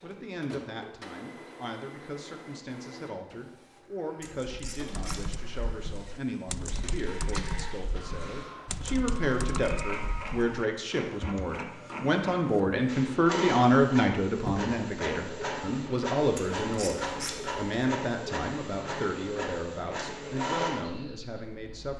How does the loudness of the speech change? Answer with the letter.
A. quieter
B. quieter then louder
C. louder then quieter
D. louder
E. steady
C.